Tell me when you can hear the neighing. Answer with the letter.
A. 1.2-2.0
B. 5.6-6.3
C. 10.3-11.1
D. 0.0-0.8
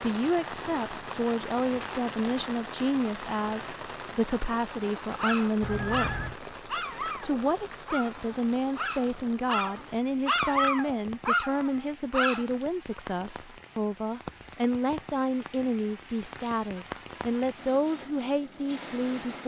B.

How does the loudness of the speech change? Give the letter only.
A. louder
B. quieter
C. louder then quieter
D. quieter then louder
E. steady
E.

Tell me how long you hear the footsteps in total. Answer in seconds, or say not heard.
not heard.